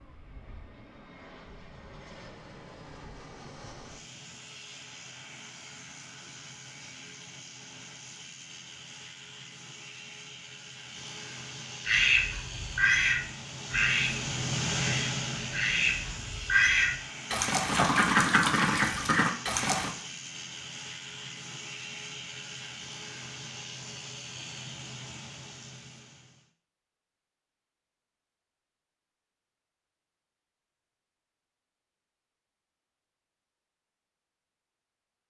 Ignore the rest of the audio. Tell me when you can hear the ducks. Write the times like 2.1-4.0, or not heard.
11.8-19.9.